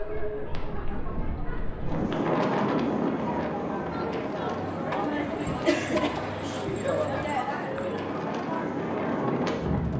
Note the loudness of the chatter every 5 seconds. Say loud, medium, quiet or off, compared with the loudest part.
medium, loud.